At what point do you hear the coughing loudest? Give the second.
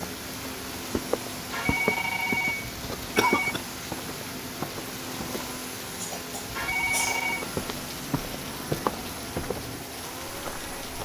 3 s.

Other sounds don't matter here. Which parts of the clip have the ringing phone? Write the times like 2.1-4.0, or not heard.
1.5-3.5, 6.5-7.5.